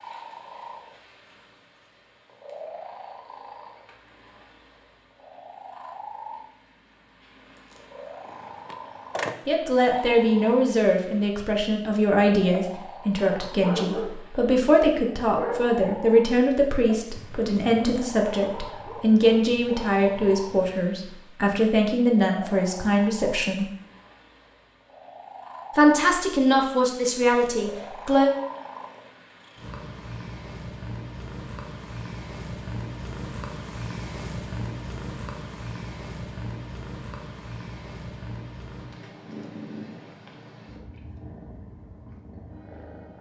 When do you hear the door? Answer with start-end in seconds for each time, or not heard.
8.2-9.3.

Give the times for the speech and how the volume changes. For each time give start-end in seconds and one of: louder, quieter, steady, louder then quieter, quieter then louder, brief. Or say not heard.
9.4-23.6 steady
25.8-28.4 brief.